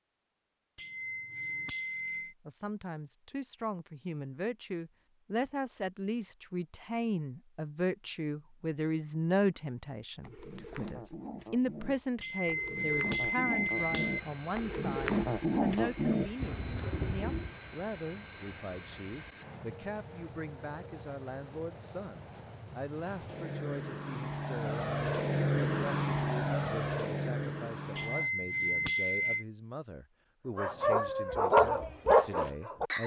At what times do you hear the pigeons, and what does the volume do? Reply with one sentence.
You can hear the pigeons from 10.2 to 17.5 s, getting louder.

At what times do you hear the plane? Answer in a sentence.
You can hear the plane from 13.7 to 28.3 s.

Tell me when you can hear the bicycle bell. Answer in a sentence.
You can hear the bicycle bell from 0.8 to 2.3 s, from 12.2 to 14.2 s and from 27.9 to 29.4 s.